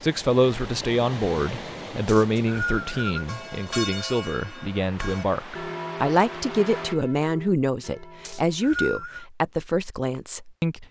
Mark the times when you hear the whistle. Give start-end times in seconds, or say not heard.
2.0-3.2, 8.2-9.2.